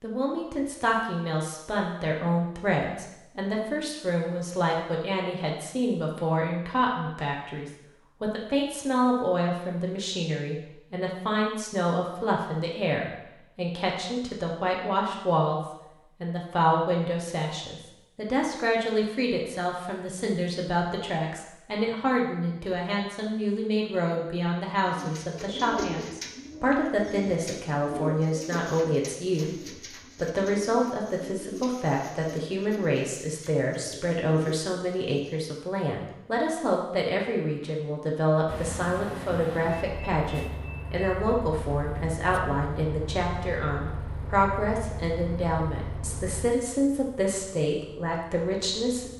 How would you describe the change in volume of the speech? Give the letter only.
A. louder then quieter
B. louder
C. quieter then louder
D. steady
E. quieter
D.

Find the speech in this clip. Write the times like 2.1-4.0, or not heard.
0.0-15.6, 16.2-49.1.